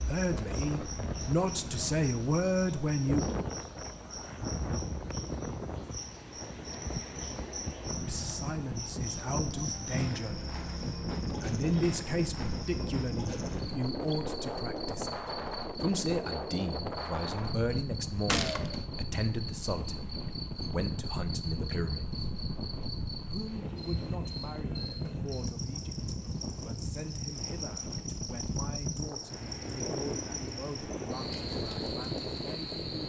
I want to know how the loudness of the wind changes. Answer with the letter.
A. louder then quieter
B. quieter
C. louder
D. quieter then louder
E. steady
E.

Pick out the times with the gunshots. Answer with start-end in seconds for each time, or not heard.
18.2-18.9.